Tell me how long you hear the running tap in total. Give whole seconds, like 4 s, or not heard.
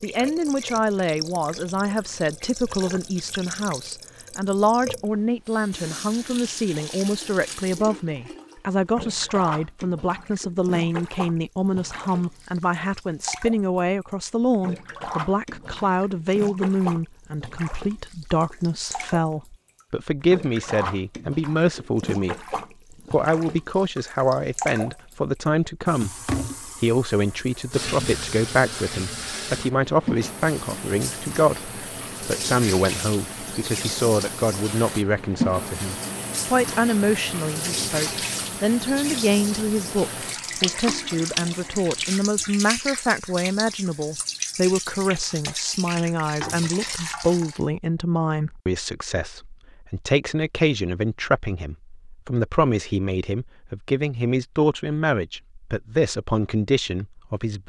48 s.